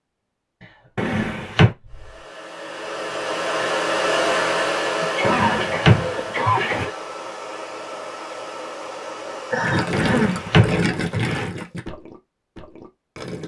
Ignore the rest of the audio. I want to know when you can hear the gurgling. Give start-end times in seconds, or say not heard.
9.6-13.4.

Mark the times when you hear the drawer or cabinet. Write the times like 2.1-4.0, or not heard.
0.9-1.8, 5.2-6.9, 9.9-11.5.